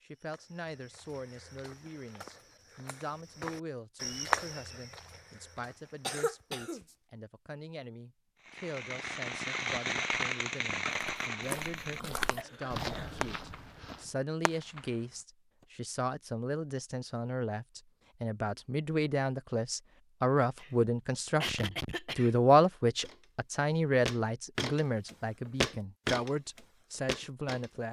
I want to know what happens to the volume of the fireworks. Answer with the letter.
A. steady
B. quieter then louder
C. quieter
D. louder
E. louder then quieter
C.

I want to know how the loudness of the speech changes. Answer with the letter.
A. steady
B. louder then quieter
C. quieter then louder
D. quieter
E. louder
E.